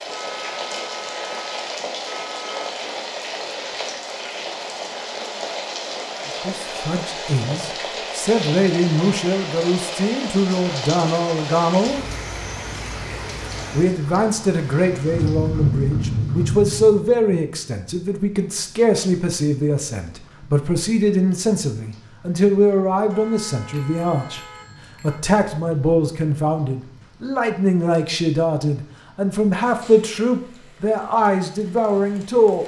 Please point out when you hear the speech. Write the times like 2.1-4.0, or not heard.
6.4-12.1, 13.7-24.4, 25.0-32.6.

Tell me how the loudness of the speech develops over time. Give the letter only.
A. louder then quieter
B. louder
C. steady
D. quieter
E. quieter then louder
C.